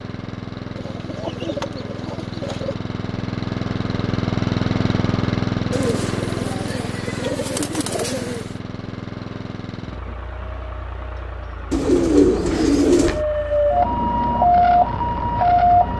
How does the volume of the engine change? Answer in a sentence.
The volume of the engine goes up, then down.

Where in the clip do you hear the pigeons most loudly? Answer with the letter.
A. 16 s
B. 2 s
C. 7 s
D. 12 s
D.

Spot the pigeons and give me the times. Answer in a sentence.
The pigeons can be heard from 0.8 to 2.8 s, from 5.7 to 8.5 s and from 11.7 to 13.2 s.